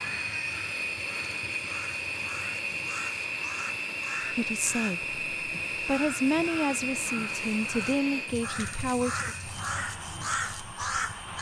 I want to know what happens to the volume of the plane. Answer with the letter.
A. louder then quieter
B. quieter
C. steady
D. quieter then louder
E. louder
B.